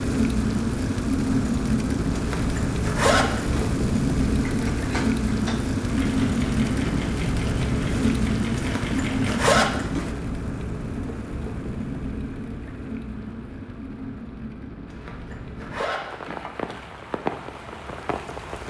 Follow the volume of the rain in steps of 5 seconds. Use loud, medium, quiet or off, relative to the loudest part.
loud, loud, medium, medium.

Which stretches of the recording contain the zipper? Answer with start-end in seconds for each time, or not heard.
2.1-3.7, 8.6-10.1, 14.8-16.4.